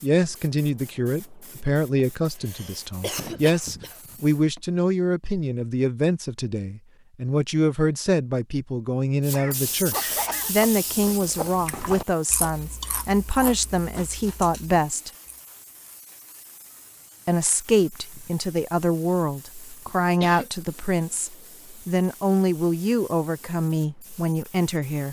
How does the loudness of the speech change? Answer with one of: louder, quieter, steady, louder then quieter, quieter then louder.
steady.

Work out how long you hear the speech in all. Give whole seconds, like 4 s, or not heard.
23 s.